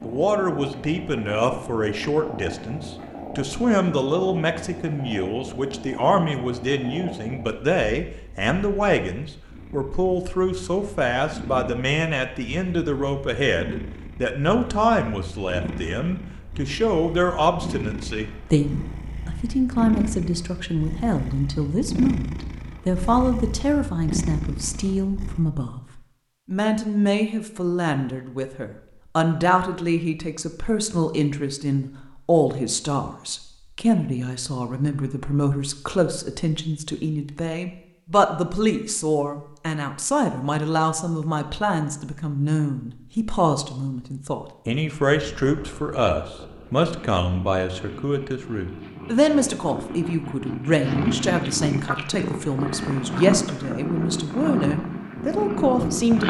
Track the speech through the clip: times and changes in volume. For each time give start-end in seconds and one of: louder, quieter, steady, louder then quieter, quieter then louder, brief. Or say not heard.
0.0-56.2 steady.